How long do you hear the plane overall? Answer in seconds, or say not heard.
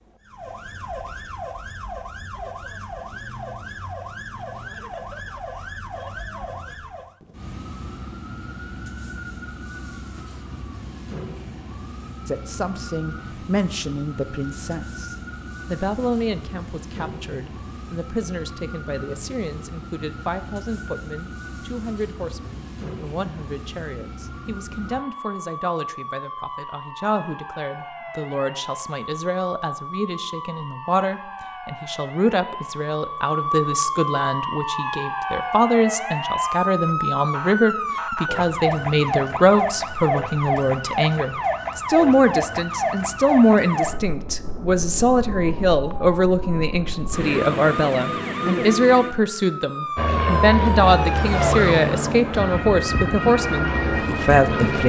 5 s.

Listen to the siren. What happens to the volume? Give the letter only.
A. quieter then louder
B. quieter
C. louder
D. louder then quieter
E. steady
C.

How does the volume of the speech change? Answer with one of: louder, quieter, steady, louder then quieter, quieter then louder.
louder.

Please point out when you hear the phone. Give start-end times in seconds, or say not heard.
not heard.